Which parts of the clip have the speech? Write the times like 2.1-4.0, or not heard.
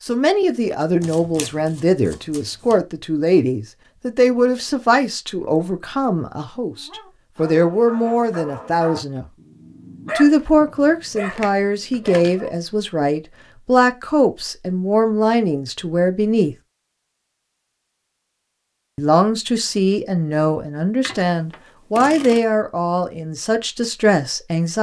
0.0-9.2, 10.2-16.6, 18.9-24.7.